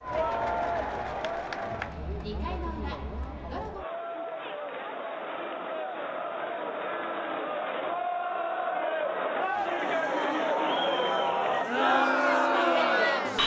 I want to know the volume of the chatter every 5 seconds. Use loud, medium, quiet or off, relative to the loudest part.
medium, medium, loud.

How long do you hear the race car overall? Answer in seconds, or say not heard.
4 s.